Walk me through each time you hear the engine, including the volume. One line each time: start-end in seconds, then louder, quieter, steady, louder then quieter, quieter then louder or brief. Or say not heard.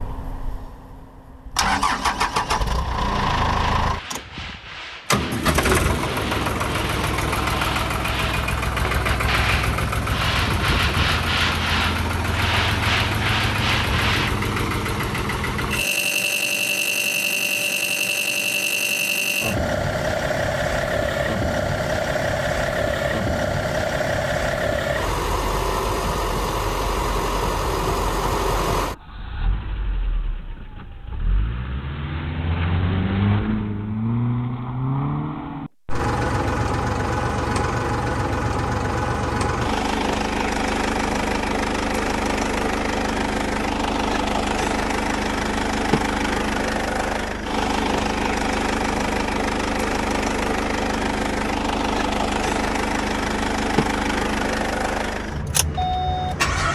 0.0-56.7 steady.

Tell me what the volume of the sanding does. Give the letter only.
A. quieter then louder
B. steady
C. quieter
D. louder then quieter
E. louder
E.